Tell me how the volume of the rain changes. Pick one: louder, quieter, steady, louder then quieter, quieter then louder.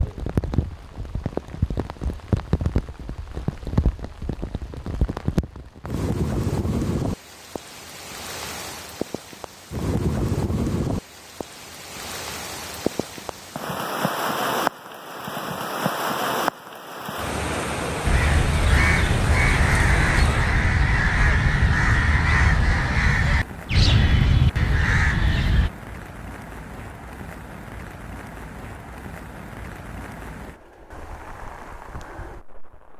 quieter.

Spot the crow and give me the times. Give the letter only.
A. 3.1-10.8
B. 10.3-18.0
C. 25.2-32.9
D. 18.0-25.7
D.